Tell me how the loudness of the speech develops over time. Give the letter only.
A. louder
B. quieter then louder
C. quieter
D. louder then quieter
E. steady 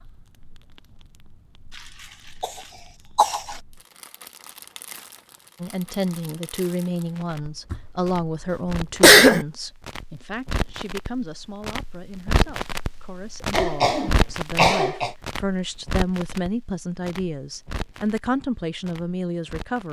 B.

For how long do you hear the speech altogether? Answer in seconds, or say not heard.
14 s.